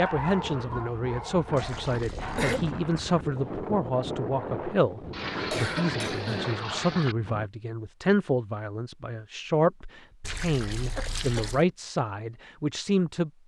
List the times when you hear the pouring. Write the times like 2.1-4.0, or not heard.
1.6-2.8, 5.1-7.2, 10.2-11.7.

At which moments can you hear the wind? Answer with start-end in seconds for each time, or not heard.
0.2-7.5.